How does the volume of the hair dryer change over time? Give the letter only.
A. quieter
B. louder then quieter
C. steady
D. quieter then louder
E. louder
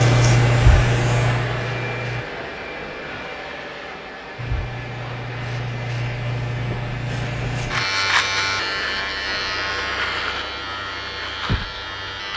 A.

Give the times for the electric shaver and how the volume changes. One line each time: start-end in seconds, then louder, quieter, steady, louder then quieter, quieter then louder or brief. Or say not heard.
0.0-2.2 brief
4.3-12.3 louder then quieter.